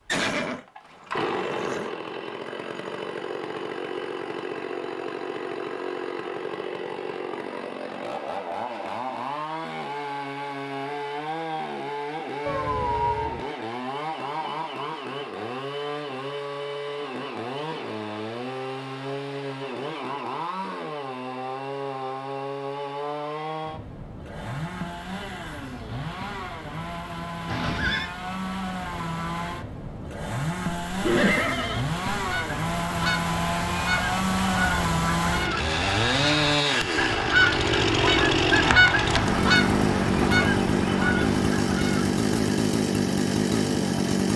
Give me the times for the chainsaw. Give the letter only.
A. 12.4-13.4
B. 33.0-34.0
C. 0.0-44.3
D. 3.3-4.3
C.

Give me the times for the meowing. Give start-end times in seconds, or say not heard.
12.4-13.4.